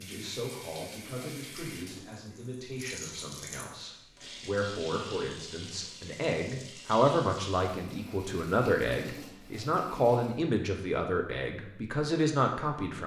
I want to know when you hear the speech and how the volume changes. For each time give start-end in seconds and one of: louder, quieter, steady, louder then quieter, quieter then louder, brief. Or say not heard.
0.0-13.0 louder.